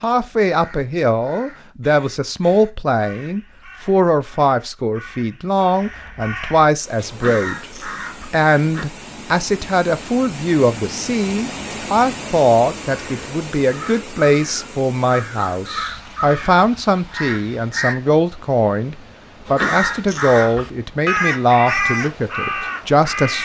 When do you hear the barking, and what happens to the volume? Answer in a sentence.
The barking can't be heard in this clip.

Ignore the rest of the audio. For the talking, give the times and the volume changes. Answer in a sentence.
The talking can be heard from 0.0 to 23.4 s, at a steady volume.